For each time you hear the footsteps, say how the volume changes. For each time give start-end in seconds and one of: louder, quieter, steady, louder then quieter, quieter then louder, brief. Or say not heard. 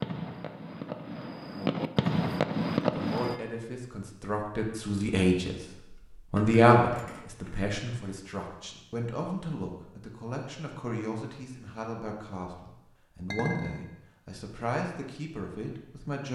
not heard.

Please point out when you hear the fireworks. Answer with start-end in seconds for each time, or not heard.
0.0-3.4.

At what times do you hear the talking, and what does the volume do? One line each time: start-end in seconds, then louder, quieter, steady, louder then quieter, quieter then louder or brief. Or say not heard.
2.9-5.5 brief
6.3-16.3 quieter.